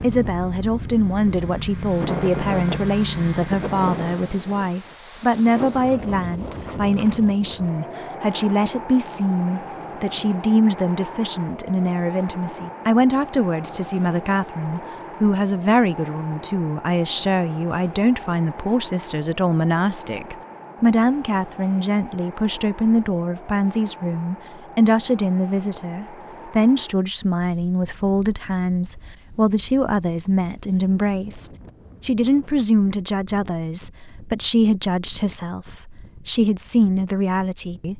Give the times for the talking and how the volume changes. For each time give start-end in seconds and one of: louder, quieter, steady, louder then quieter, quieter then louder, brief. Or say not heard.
0.0-37.9 steady.